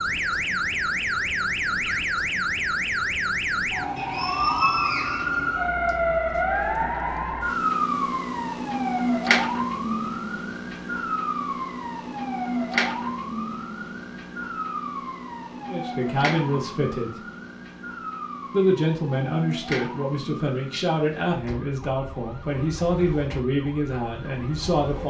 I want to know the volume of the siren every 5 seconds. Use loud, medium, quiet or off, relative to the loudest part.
loud, loud, medium, medium, quiet.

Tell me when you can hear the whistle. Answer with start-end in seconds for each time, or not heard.
4.0-5.9.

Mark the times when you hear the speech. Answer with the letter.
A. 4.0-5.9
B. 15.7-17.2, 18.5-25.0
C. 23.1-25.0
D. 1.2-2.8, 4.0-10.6
B.